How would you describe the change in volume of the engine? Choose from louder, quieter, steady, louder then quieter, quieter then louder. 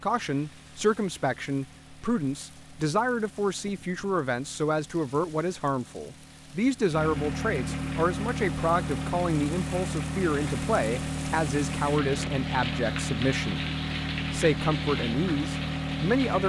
louder.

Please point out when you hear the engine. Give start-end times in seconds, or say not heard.
0.0-16.4.